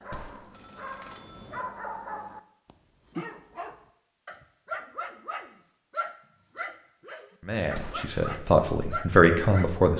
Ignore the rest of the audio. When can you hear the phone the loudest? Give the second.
8 s.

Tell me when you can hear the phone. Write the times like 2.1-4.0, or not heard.
0.1-1.6, 7.8-8.4.